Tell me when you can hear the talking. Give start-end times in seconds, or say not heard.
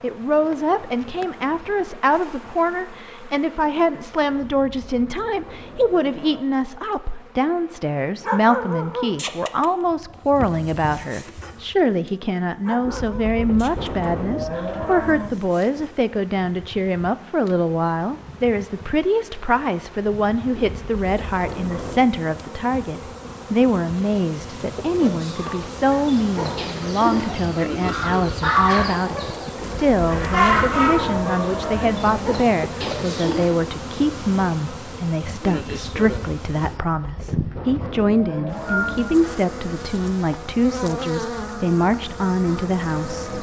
0.0-43.3.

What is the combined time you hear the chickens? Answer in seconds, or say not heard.
8 s.